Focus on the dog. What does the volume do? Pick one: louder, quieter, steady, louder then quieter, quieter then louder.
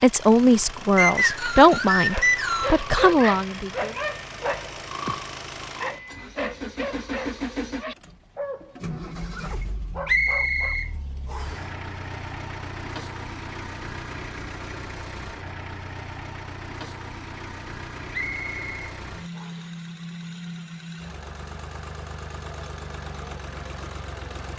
quieter.